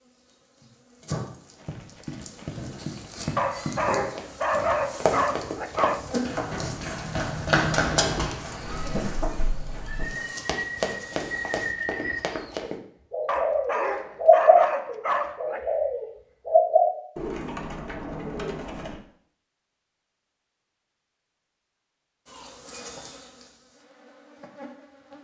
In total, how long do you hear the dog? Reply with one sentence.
The dog can be heard for 5 seconds in total.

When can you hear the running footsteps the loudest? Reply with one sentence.
The volume of the running footsteps peaks at 8 seconds.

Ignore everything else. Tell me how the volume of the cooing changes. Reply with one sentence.
The volume of the cooing goes up.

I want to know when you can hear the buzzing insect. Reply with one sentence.
You can hear the buzzing insect from 0.0 to 11.8 s and from 22.2 to 25.2 s.